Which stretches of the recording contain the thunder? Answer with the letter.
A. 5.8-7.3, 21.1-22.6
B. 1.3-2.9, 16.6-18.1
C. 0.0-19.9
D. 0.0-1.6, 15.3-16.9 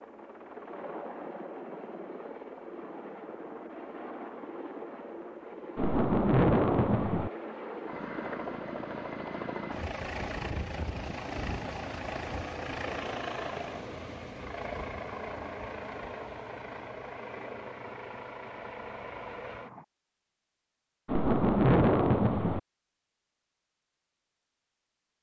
A.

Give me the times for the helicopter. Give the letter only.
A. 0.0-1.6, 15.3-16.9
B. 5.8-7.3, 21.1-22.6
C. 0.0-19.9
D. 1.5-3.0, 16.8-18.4
C.